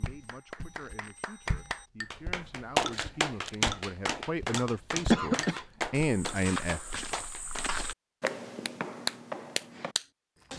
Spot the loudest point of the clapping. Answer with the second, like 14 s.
3 s.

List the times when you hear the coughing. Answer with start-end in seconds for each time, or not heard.
5.1-5.6.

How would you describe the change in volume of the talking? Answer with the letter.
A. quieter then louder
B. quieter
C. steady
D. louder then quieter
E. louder
E.